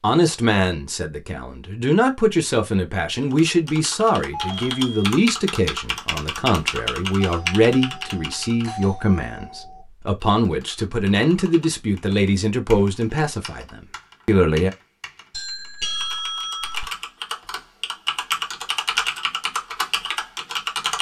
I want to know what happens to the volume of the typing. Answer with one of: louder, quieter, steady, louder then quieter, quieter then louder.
quieter then louder.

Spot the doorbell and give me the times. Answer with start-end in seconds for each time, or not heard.
4.3-5.2, 7.2-9.8, 15.3-16.9.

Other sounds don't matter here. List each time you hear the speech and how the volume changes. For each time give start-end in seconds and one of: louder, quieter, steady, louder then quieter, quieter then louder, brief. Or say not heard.
0.0-14.7 steady.